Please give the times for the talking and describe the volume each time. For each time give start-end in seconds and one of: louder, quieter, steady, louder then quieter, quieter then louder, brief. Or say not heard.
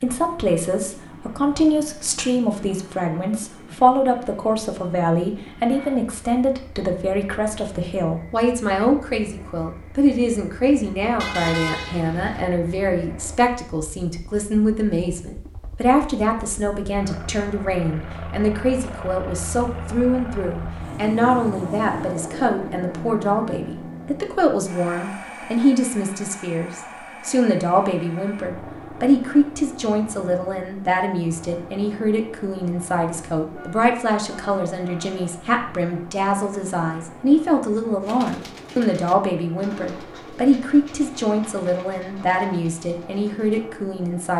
0.0-44.3 steady.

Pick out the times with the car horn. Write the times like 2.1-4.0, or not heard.
11.2-12.4, 33.5-35.2.